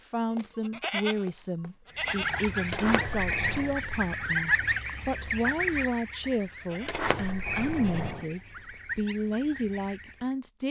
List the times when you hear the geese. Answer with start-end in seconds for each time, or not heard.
1.9-10.3.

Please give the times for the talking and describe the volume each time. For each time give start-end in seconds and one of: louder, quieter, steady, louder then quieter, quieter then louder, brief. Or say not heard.
0.0-10.6 steady.